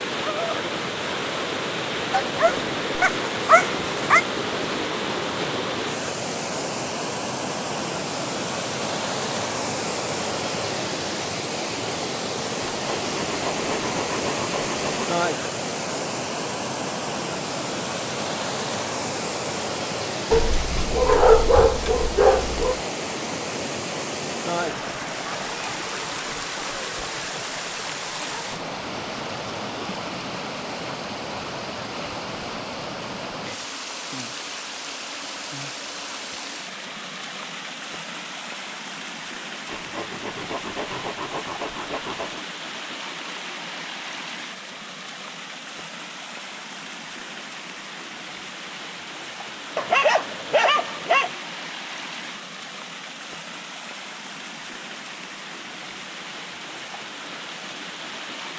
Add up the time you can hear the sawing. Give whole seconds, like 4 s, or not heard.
5 s.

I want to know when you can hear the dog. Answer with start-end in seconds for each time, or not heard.
2.1-4.2, 20.3-22.8, 49.8-51.3.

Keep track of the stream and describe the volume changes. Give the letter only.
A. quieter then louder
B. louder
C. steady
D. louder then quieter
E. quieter
E.